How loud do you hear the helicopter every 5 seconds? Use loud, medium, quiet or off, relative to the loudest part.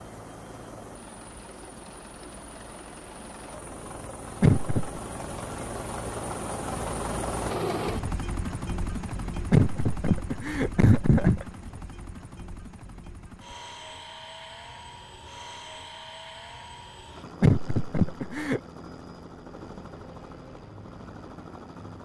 medium, loud, medium, medium, medium.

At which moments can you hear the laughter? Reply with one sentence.
The laughter can be heard from 4.4 to 5.0 s, from 9.5 to 11.4 s and from 17.4 to 18.6 s.